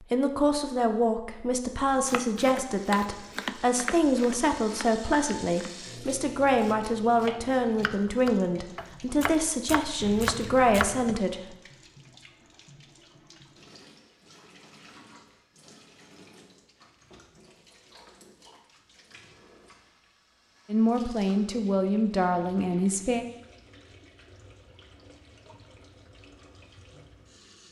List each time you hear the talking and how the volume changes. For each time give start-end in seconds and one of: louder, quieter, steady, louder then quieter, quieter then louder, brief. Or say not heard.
0.0-11.6 steady
20.7-23.2 brief.